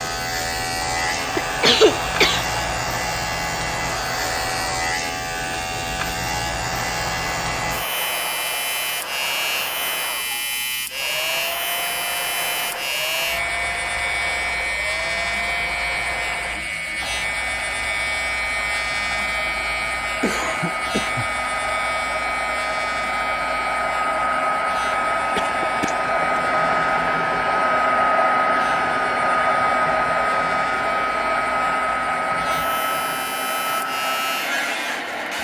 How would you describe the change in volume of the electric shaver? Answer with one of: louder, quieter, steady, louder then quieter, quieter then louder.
quieter.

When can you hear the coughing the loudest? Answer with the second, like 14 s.
2 s.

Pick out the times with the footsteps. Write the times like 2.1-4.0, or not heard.
not heard.